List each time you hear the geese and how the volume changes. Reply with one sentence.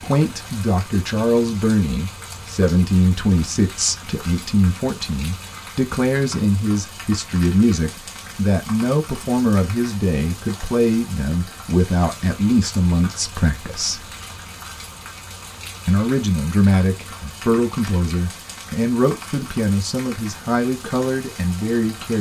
You can't hear the geese here.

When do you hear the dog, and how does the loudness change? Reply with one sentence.
You can't hear the dog here.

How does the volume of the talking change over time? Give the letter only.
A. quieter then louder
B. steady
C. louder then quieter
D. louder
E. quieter
B.